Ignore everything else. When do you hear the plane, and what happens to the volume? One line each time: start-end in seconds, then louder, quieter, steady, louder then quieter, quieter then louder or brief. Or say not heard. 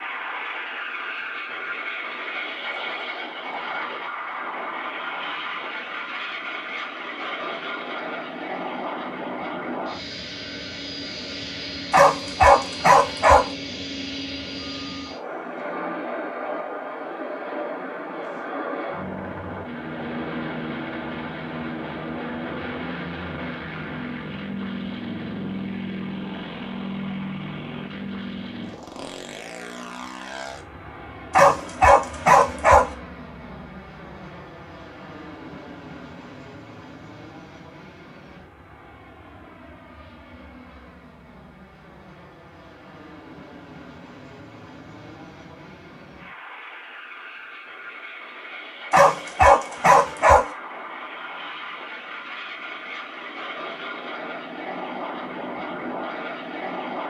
0.0-57.0 quieter then louder.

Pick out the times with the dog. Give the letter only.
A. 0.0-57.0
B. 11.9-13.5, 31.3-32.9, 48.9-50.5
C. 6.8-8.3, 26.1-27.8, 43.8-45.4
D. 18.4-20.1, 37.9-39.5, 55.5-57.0
B.